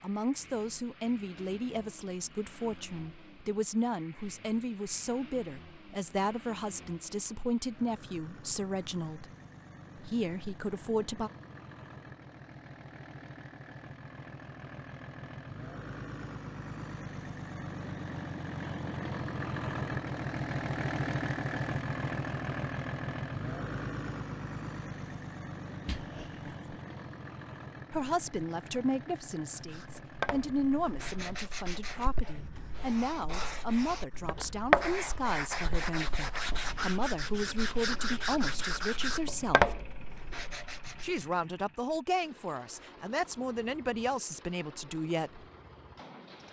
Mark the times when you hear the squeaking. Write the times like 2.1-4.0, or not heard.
25.9-26.5.